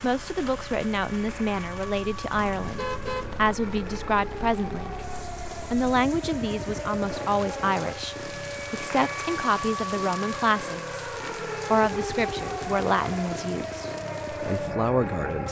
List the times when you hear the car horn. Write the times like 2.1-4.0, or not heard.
2.4-3.6.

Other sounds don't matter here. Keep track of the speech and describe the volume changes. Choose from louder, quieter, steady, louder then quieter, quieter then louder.
steady.